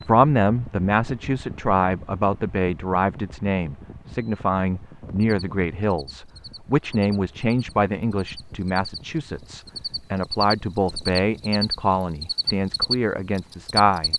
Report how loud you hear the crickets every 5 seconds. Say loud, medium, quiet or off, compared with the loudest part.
off, quiet, loud.